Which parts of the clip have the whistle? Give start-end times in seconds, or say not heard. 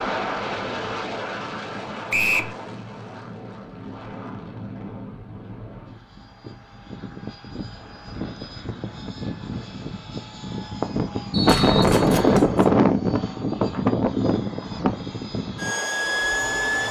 2.1-2.5, 11.3-12.4.